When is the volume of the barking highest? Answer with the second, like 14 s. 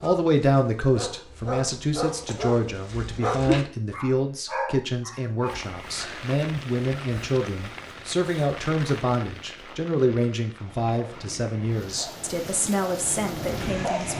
3 s.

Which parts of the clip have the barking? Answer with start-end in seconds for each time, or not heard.
0.0-5.6, 10.7-14.1.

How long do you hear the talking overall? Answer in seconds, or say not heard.
14 s.